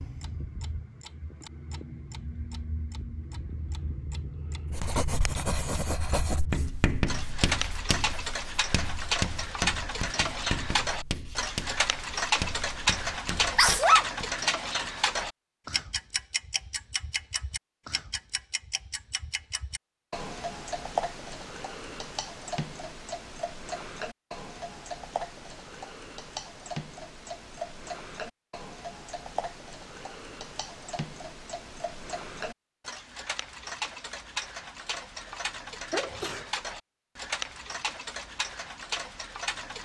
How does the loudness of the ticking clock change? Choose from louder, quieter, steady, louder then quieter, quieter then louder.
louder then quieter.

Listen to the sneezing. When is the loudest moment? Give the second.
14 s.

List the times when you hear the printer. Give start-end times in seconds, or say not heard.
not heard.